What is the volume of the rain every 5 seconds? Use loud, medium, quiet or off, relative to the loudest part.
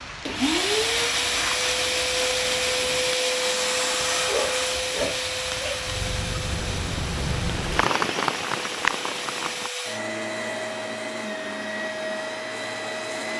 medium, loud, off.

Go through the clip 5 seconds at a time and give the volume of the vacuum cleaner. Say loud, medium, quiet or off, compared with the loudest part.
loud, medium, medium.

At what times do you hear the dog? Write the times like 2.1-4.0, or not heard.
4.1-5.8.